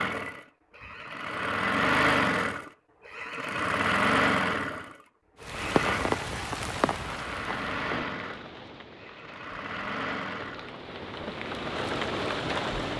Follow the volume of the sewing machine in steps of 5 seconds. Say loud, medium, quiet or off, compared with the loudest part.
loud, medium, medium.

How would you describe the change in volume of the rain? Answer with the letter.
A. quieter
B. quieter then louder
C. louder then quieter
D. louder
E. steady
B.